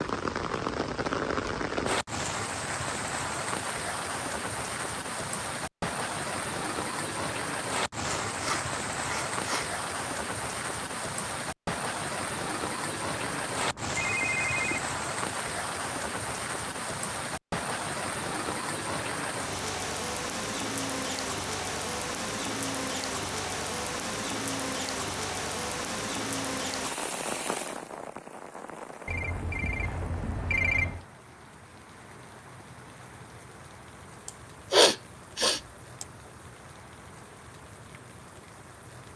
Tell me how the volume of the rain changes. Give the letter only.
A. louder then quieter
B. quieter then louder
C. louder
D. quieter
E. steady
D.